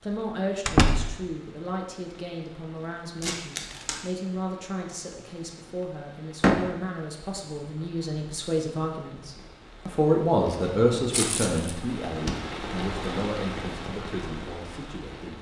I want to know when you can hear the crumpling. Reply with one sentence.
You can hear the crumpling from 3.2 to 4.1 s and from 11.1 to 11.8 s.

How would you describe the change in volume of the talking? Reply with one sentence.
The loudness of the talking goes up, then down.